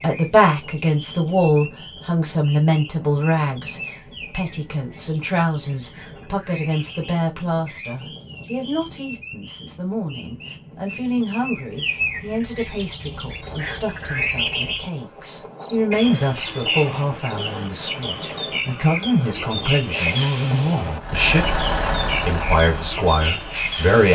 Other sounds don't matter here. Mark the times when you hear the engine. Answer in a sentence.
The engine can be heard from 21.0 to 23.9 s.